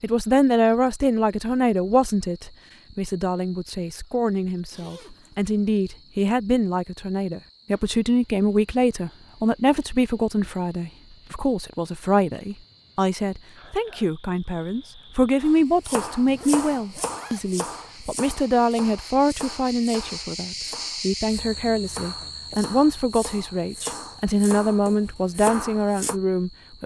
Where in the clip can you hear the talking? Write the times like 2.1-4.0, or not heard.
0.0-26.8.